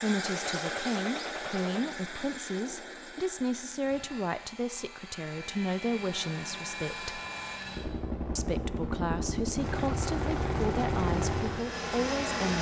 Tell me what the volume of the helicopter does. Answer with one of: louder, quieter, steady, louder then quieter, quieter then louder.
quieter then louder.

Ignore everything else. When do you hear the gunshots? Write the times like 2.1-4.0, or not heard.
0.2-1.9.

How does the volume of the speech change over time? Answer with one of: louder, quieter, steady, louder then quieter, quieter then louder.
steady.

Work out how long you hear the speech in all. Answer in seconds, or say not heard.
11 s.